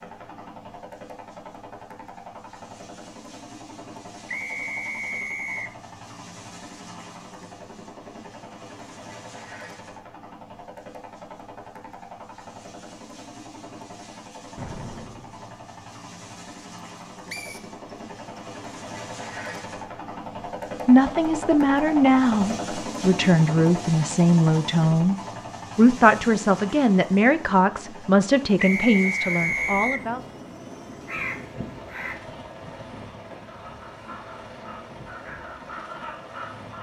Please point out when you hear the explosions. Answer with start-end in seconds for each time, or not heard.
14.6-15.5.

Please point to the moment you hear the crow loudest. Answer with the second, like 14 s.
31 s.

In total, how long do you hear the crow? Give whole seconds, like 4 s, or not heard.
7 s.